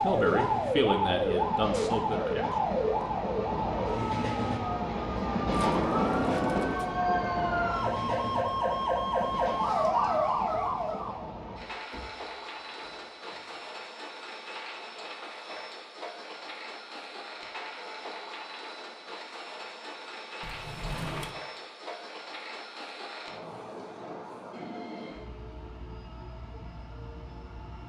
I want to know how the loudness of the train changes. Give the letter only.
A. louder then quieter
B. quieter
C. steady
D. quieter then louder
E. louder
B.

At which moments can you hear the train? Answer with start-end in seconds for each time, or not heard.
0.0-27.8.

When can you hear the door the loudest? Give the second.
6 s.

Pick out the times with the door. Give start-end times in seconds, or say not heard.
5.5-6.8, 11.9-13.6, 20.4-21.4.